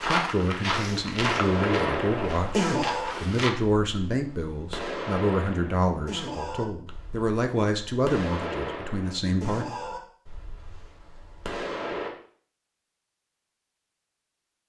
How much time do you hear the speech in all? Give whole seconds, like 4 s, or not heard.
10 s.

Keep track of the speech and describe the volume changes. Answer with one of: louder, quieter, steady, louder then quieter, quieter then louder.
steady.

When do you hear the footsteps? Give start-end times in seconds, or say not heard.
0.0-3.5.